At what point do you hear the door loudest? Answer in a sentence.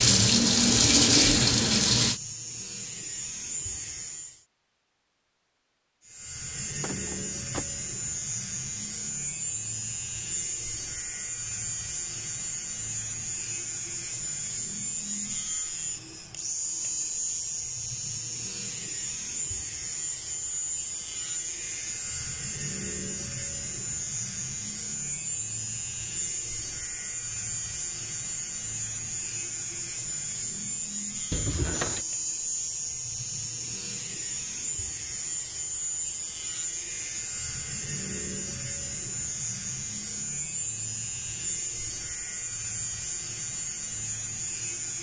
The volume of the door peaks at 32 seconds.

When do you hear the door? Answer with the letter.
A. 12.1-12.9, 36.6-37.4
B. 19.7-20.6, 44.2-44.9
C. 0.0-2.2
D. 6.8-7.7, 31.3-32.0
D.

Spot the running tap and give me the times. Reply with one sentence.
The running tap can be heard from 0.0 to 2.2 s.